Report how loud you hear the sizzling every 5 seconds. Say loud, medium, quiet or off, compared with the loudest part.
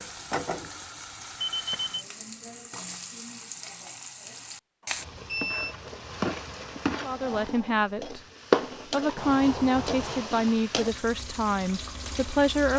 medium, loud, medium.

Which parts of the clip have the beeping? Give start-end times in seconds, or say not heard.
1.4-2.0, 4.8-5.8, 9.2-10.3.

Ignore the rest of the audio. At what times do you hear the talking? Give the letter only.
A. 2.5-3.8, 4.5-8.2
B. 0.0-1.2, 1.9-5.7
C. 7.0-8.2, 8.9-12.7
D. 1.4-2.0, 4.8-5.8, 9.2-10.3
C.